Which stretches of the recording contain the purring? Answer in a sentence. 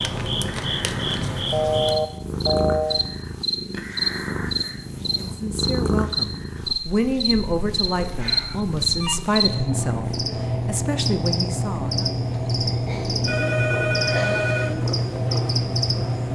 You can hear the purring from 0.1 to 16.3 s.